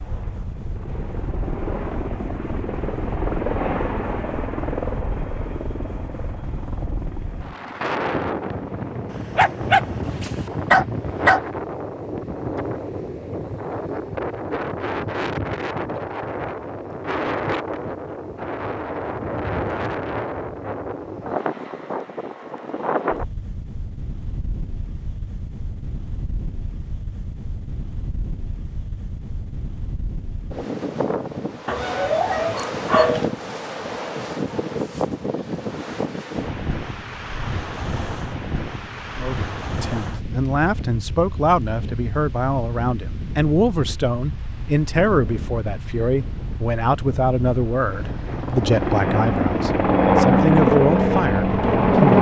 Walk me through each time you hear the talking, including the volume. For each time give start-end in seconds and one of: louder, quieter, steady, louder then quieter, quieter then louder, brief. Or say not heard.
39.1-52.1 steady.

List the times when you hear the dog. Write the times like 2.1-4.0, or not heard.
9.1-11.4, 31.6-33.3.